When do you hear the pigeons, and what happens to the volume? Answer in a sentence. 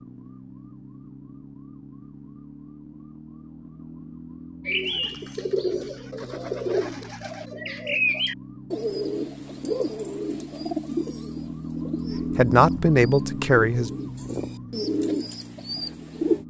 You can hear the pigeons from 4.7 to 16.4 s, getting quieter then louder.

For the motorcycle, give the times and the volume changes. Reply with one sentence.
You can't hear the motorcycle here.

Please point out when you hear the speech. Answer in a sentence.
The speech can be heard from 12.3 to 13.9 s.